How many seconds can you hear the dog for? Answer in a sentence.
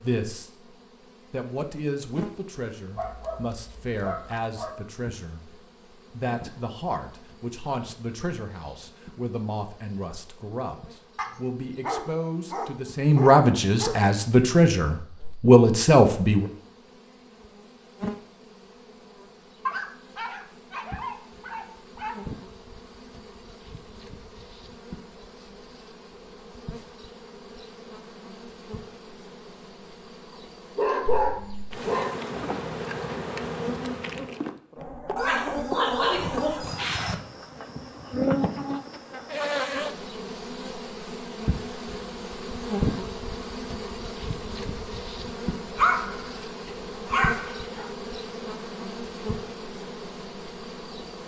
The dog can be heard for 13 seconds in total.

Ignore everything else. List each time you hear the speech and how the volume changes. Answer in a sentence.
You can hear the speech briefly from 0.0 to 0.7 s; and from 1.3 to 16.5 s, getting louder.